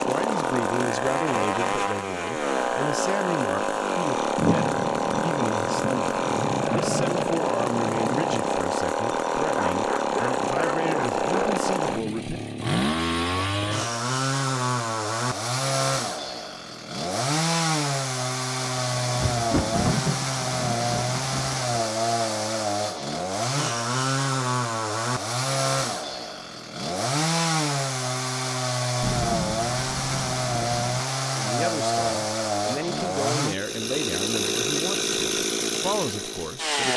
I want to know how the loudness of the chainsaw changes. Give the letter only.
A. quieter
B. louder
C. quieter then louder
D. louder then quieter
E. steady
E.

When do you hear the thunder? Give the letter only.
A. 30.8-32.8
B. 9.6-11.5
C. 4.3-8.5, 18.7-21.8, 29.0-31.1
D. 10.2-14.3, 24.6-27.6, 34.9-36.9
C.